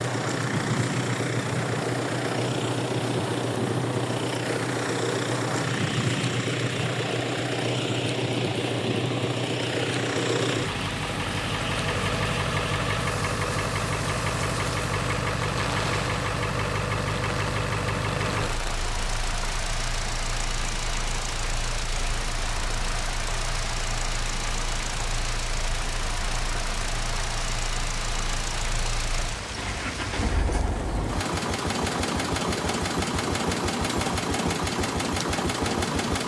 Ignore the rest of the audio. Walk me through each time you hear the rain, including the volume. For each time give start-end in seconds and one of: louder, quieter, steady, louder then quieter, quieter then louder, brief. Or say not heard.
0.0-36.2 steady.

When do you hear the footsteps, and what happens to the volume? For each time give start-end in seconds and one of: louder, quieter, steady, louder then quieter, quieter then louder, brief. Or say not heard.
not heard.